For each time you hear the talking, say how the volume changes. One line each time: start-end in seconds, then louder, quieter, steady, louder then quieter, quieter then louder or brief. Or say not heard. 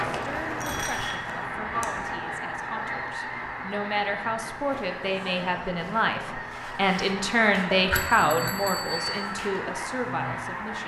0.0-10.8 louder then quieter.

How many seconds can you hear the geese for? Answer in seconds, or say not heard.
11 s.